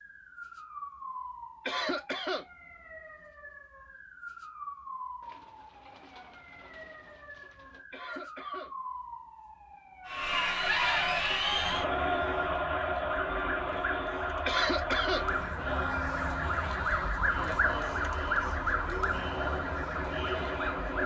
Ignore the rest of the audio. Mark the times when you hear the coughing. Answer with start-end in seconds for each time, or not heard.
1.6-2.5, 7.9-8.7, 14.4-15.2.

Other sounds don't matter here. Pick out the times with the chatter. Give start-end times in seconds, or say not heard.
10.1-21.0.